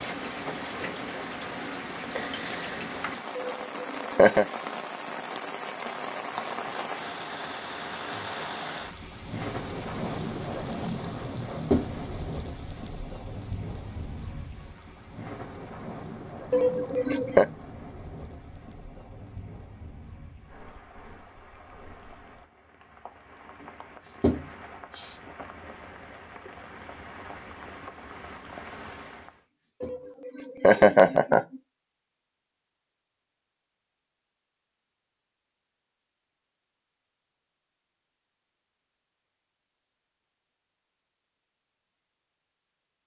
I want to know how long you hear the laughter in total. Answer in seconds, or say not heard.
4 s.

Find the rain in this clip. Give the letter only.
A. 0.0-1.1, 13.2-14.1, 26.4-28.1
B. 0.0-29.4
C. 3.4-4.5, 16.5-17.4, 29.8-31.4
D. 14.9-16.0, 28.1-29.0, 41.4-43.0
B.